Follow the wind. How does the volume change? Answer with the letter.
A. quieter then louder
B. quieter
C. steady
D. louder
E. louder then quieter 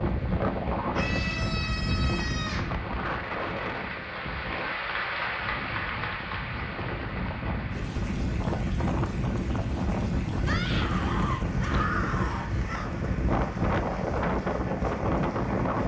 A.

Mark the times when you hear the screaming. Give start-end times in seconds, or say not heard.
0.9-2.8, 10.4-12.9.